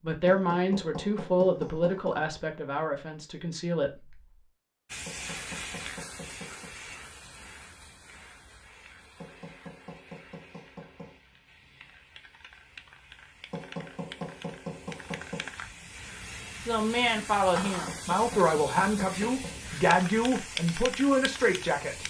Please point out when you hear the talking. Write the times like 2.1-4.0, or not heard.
0.0-4.2, 16.6-22.0.